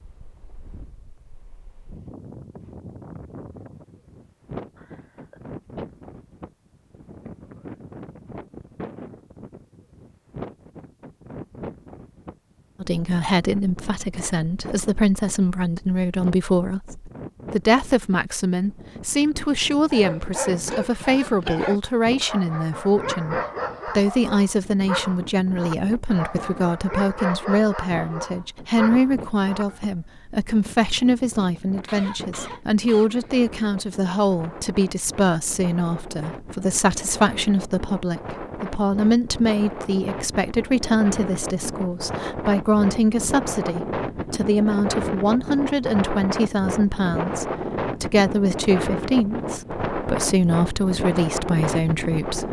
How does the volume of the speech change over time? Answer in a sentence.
The volume of the speech stays about the same.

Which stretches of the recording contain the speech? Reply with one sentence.
You can hear the speech from 12.8 to 52.4 s.